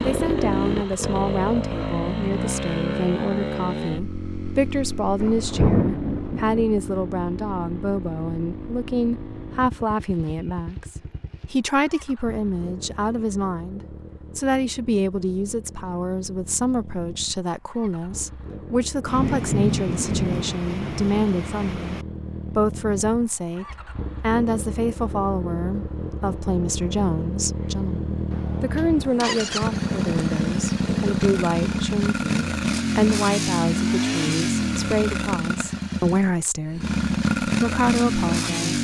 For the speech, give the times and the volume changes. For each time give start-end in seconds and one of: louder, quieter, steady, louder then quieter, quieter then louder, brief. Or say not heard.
0.0-38.7 steady.